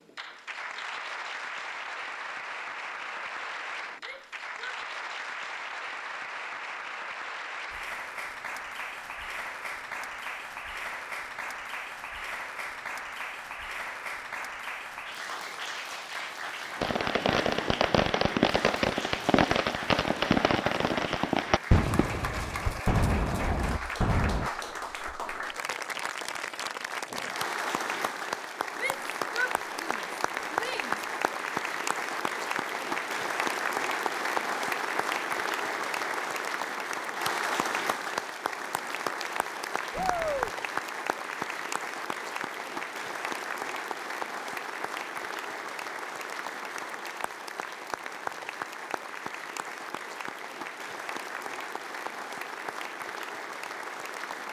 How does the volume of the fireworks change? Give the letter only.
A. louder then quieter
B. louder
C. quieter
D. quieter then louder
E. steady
E.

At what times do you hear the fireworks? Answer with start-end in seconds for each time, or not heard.
16.8-24.5.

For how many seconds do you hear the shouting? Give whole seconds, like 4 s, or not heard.
4 s.